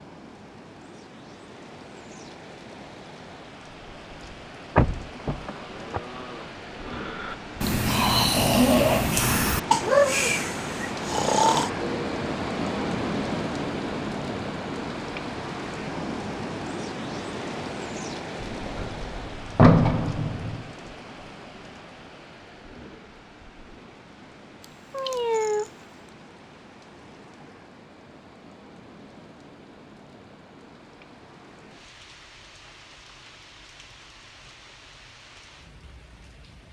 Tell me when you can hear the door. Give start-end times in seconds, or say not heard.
4.8-6.0, 18.4-20.6.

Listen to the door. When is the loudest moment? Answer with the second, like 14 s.
20 s.